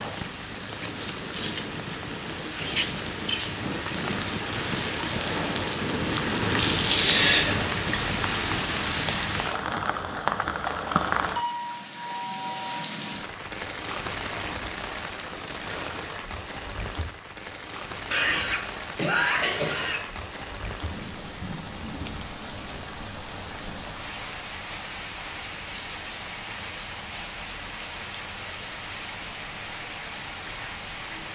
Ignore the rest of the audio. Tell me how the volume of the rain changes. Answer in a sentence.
The loudness of the rain goes down.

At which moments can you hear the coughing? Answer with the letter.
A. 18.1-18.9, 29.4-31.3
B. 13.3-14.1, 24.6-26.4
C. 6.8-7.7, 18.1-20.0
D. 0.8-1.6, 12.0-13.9
C.